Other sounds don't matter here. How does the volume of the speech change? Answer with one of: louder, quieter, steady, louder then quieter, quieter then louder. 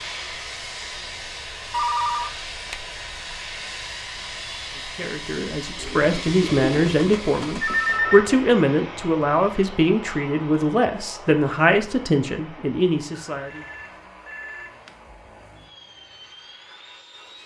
steady.